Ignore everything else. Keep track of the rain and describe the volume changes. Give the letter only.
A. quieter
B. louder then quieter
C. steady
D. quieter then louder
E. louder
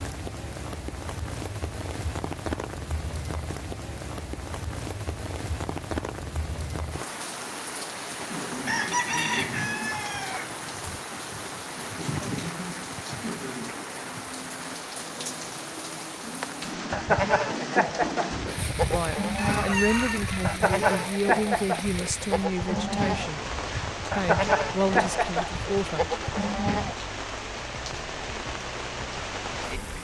C.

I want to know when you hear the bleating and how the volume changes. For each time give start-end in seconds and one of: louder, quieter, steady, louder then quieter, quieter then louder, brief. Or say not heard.
16.9-26.9 steady.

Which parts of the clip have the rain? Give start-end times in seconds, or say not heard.
0.0-30.0.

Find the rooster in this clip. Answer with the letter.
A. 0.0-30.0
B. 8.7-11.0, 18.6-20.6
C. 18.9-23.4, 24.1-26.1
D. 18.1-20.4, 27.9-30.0
B.